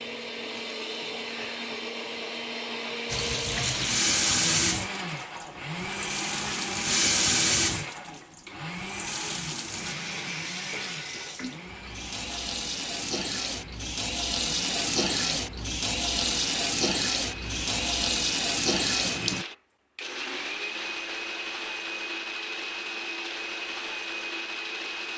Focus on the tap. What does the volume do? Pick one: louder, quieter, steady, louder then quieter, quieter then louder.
quieter then louder.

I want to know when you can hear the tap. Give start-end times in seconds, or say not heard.
3.0-19.4.